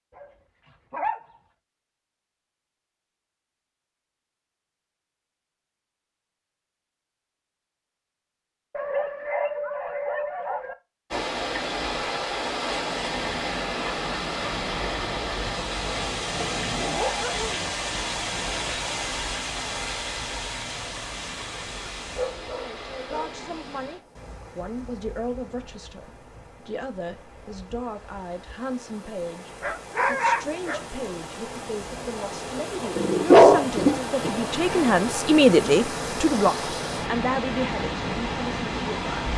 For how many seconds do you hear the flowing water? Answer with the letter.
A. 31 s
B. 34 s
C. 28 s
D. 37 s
C.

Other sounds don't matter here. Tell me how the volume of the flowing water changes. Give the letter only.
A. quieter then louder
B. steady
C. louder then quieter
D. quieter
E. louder
A.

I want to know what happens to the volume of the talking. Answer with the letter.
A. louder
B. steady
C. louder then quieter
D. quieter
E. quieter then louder
A.